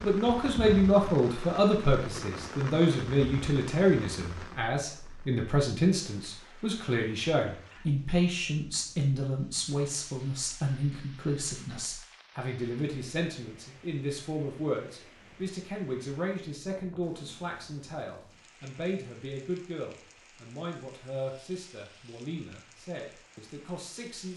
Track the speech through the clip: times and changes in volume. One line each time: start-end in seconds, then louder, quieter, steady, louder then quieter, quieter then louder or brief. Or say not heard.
0.0-24.3 quieter.